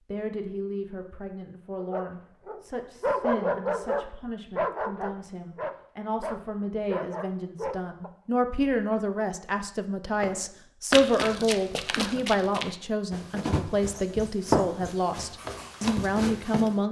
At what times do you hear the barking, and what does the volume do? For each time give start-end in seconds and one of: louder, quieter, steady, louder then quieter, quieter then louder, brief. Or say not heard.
1.8-8.1 quieter.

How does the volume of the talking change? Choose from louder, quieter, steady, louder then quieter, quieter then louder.
louder.